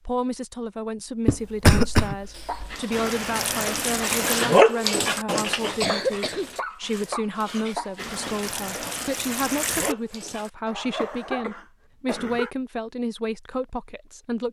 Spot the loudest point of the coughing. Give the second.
2 s.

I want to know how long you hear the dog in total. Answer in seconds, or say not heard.
9 s.